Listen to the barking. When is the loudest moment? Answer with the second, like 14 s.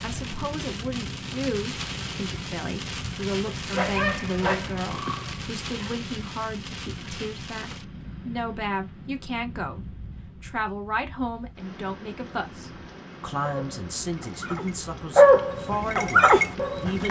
15 s.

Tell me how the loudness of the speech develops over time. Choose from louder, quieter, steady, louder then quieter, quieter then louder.
steady.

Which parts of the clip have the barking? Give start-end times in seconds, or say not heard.
3.5-5.9, 13.4-17.0.